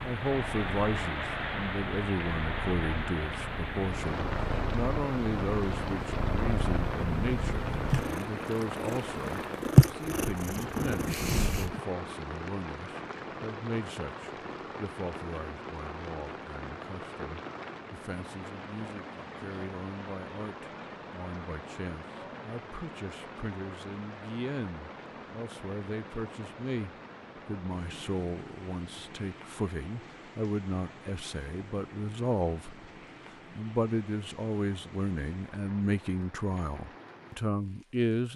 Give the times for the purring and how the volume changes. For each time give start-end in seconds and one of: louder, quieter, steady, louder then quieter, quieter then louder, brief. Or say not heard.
0.0-11.8 louder.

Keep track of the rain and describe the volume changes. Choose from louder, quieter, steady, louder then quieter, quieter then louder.
quieter.